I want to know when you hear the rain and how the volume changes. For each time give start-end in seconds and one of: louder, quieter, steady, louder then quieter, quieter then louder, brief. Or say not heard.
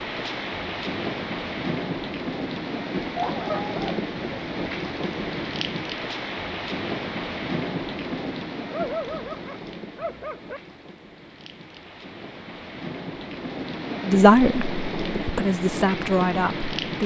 0.0-17.0 quieter then louder.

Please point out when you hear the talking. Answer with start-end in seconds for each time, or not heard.
14.1-17.0.